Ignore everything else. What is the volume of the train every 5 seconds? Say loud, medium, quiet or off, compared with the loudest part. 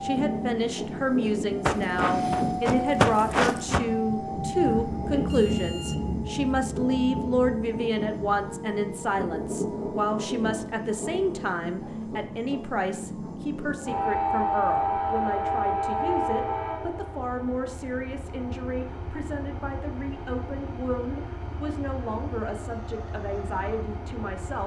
loud, loud, loud, loud, medium.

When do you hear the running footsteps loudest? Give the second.
3 s.